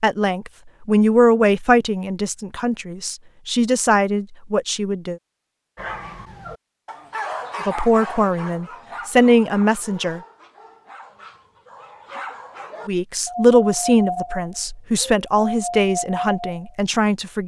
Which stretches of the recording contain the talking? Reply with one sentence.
You can hear the talking from 0.0 to 5.2 s, from 7.7 to 10.2 s and from 12.8 to 17.4 s.